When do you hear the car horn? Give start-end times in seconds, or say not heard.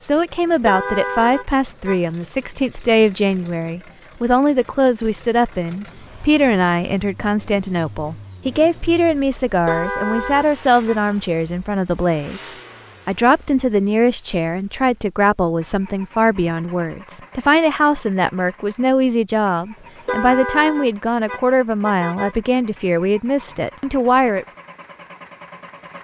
0.6-2.5, 9.4-11.0, 19.9-22.4.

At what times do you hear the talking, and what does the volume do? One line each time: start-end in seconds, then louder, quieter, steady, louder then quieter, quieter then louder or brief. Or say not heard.
0.0-24.4 steady.